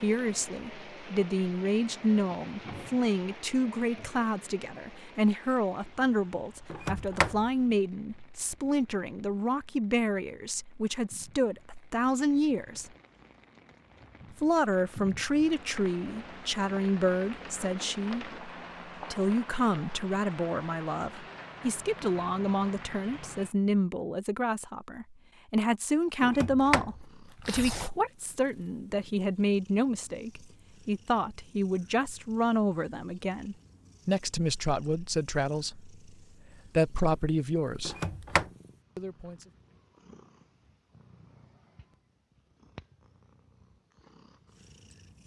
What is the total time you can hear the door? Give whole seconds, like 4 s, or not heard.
3 s.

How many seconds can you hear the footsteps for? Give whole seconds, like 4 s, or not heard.
not heard.